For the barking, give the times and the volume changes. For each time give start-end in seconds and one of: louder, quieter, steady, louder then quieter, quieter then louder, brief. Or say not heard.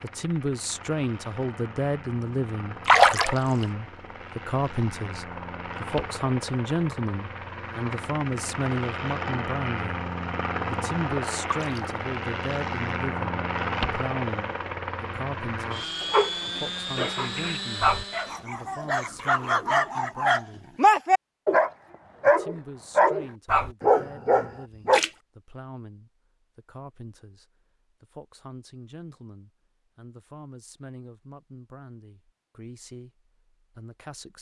16.0-25.0 louder.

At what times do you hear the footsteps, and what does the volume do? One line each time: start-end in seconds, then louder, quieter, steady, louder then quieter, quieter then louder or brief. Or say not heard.
not heard.